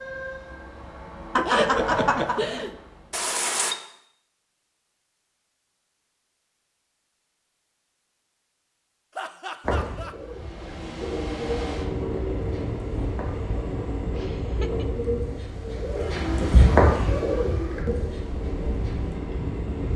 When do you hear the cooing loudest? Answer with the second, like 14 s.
17 s.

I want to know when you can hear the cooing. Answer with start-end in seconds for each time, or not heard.
9.6-19.2.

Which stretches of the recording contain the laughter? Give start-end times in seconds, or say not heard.
1.4-2.8, 9.2-10.2, 14.2-14.8.